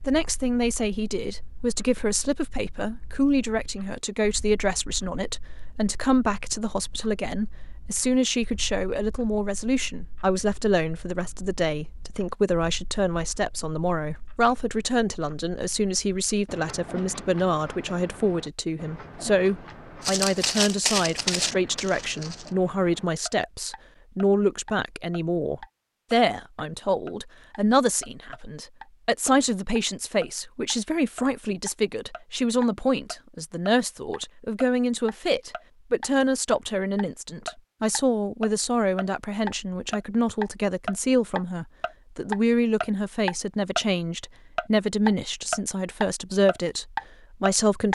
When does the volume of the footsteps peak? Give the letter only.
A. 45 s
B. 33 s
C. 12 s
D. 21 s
D.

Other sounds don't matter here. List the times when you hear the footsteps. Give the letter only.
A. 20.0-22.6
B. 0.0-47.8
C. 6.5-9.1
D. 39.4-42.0
A.